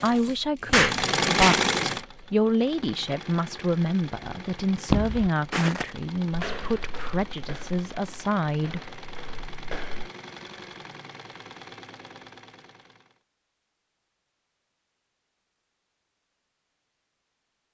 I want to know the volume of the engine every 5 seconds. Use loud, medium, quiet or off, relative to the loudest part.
loud, quiet, quiet, off.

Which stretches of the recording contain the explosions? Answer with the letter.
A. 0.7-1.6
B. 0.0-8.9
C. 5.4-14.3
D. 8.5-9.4
A.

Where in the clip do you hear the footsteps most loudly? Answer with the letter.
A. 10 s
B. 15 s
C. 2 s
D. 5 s
D.